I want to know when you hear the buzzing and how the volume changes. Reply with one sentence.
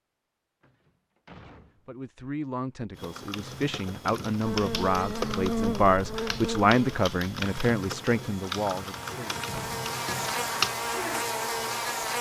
The buzzing can be heard from 4.4 to 12.1 s, getting quieter then louder.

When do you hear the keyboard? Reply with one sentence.
The keyboard can be heard from 3.0 to 10.8 s.